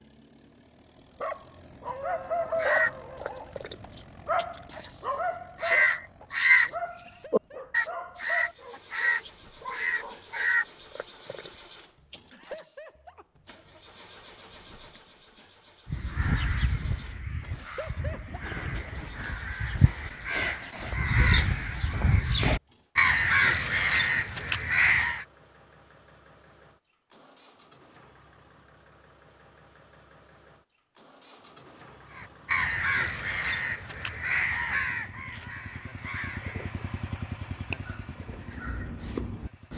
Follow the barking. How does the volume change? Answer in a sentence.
The loudness of the barking goes down.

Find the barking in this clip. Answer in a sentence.
You can hear the barking from 1.2 to 10.7 s.